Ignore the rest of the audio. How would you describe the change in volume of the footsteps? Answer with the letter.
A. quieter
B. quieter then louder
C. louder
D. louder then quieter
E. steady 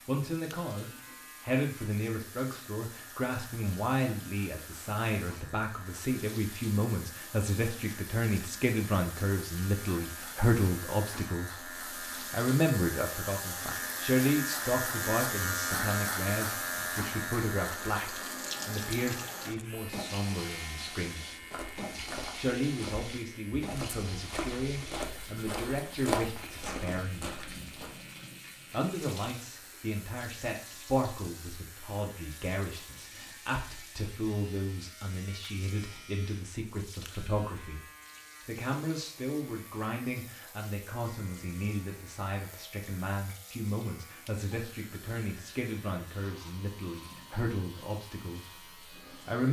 D.